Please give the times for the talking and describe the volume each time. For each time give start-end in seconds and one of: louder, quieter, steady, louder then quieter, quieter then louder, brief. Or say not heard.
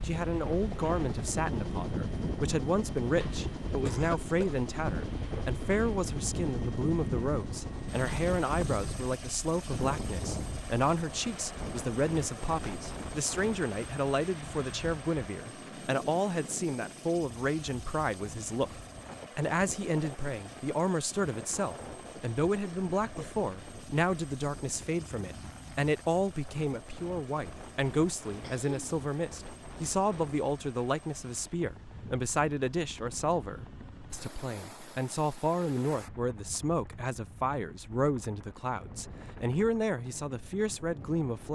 0.0-41.5 steady.